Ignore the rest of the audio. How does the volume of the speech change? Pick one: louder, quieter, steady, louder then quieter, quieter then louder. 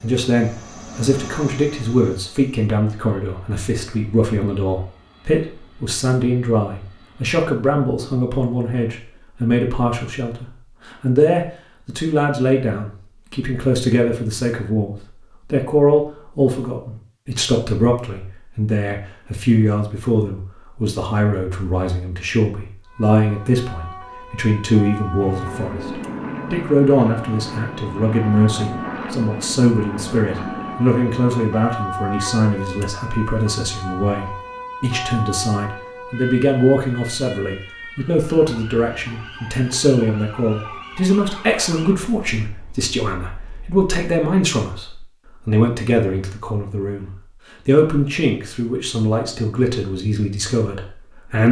steady.